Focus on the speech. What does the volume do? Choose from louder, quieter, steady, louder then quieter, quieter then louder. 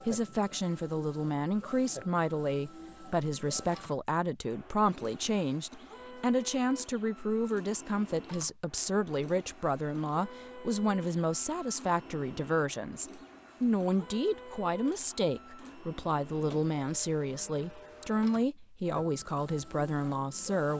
steady.